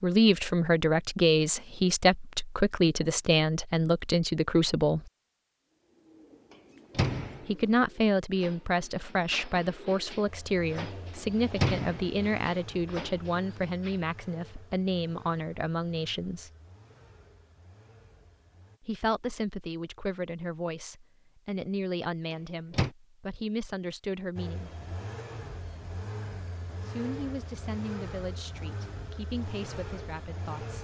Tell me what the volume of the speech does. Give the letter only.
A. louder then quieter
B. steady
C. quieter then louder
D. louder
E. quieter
E.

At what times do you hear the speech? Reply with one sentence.
You can hear the speech from 0.0 to 5.1 s, from 7.5 to 16.5 s, from 18.8 to 24.8 s and from 26.8 to 30.8 s.